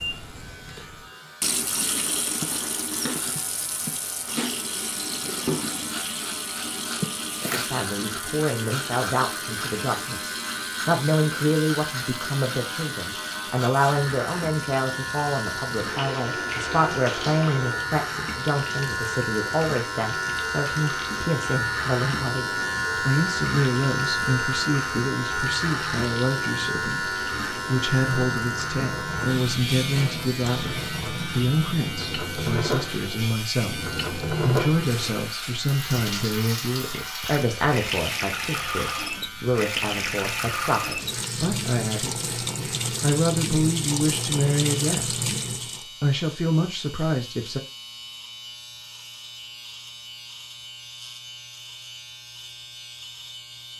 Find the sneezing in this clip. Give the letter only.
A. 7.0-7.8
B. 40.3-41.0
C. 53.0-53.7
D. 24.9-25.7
A.